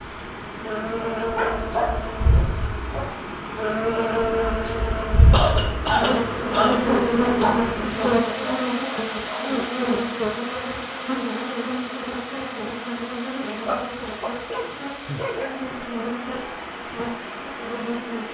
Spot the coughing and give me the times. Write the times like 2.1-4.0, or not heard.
5.3-6.8.